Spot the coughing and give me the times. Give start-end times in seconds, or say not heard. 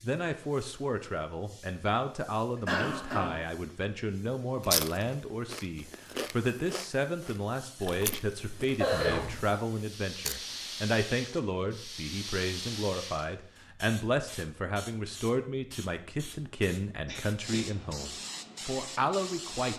2.5-3.4, 7.8-9.6, 17.1-17.8.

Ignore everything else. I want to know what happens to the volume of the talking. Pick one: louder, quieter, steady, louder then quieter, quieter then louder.
steady.